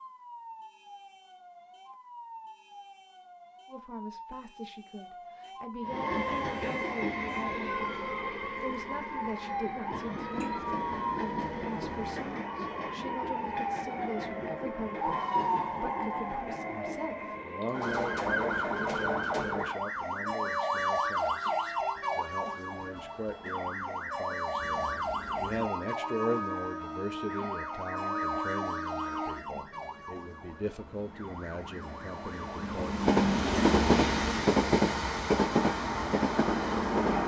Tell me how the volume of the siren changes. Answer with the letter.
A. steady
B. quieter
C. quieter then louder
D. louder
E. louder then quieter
E.